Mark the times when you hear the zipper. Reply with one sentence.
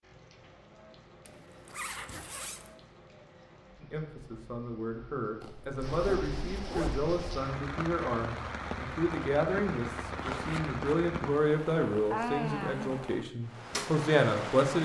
You can hear the zipper from 1.2 to 2.8 s, from 5.4 to 7.1 s and from 10.2 to 11.0 s.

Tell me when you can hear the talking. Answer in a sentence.
You can hear the talking from 3.8 to 14.8 s.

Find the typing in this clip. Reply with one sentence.
The typing can't be heard in this clip.